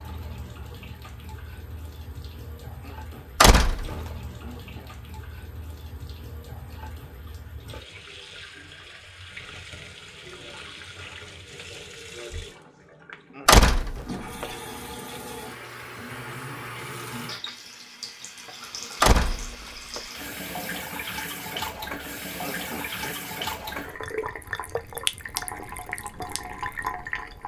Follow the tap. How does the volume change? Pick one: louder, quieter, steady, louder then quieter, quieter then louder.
louder.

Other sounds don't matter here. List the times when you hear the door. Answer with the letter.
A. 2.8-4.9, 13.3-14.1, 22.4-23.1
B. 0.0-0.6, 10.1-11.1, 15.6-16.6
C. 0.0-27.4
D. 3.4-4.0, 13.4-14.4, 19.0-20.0
D.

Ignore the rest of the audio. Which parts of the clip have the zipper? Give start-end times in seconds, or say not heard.
not heard.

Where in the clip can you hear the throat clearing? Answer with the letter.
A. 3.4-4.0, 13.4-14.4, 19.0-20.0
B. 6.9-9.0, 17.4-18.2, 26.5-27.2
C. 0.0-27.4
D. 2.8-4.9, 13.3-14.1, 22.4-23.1
D.